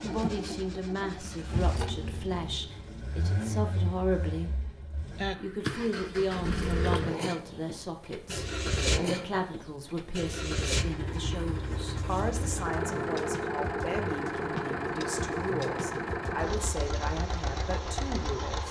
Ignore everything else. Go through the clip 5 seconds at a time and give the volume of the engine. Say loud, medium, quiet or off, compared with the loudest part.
medium, loud, loud, loud.